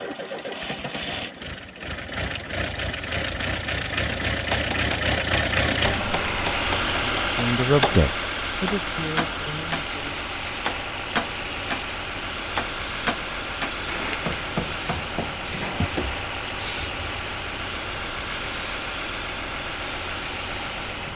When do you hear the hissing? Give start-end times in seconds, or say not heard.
2.6-20.9.